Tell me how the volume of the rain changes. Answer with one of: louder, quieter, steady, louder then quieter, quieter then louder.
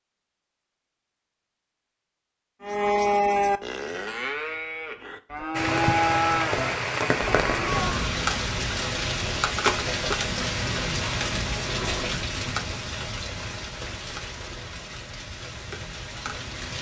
quieter.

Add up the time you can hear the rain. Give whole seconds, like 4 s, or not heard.
11 s.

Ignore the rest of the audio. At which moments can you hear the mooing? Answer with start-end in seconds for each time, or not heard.
2.6-8.2.